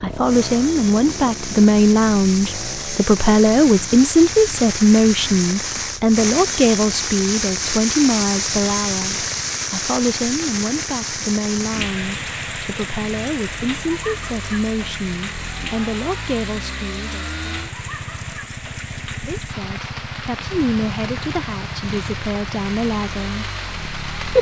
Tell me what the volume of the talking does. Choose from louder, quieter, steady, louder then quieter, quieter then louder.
quieter.